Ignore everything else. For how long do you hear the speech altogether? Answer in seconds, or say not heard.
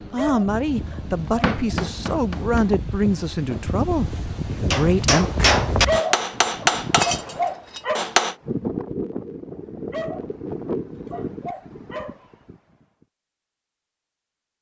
5 s.